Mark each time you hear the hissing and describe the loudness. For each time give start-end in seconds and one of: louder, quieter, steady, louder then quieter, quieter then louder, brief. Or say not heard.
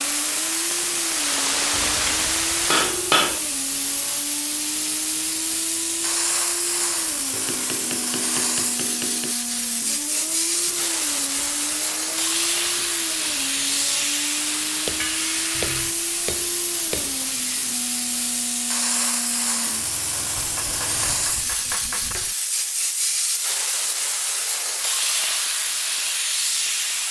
0.0-27.0 steady.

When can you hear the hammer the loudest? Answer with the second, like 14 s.
3 s.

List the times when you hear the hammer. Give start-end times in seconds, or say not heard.
1.7-3.4, 7.3-9.3, 14.8-17.2, 20.4-22.4.